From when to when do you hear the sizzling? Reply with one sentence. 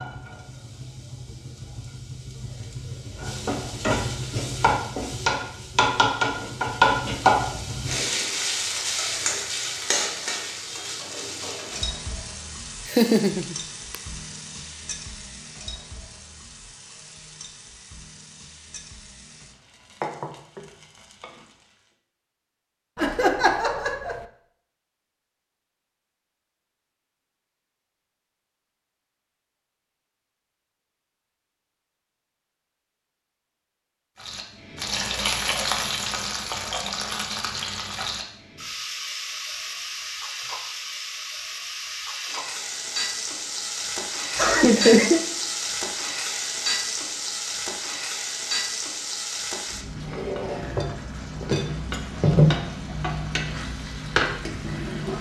The sizzling can be heard from 0.0 to 21.8 s and from 34.2 to 55.1 s.